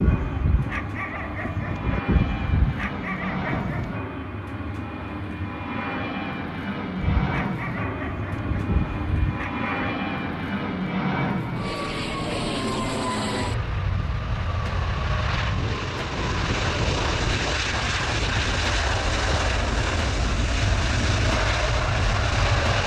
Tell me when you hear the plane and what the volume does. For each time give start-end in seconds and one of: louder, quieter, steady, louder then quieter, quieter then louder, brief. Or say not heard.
0.0-22.8 louder.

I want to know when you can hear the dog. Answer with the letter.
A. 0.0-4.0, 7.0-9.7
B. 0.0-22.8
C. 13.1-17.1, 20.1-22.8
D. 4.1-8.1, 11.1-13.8
A.